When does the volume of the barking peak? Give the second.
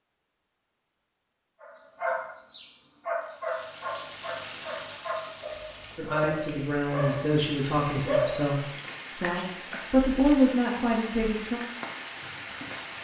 8 s.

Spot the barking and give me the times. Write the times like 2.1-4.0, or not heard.
1.6-8.4.